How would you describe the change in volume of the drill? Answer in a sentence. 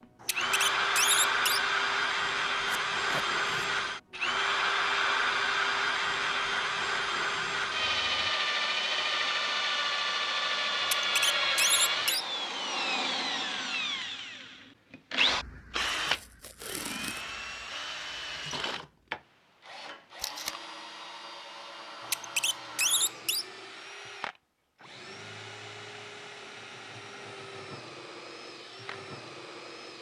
The volume of the drill goes down.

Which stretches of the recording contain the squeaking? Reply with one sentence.
You can hear the squeaking from 0.2 to 1.6 s, from 10.8 to 12.2 s and from 22.0 to 23.4 s.